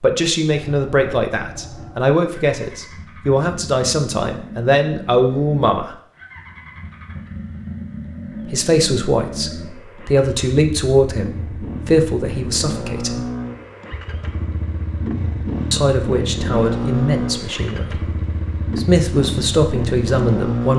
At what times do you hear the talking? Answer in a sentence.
You can hear the talking from 0.0 to 5.9 s, from 8.4 to 13.2 s, from 15.7 to 18.0 s and from 18.8 to 20.7 s.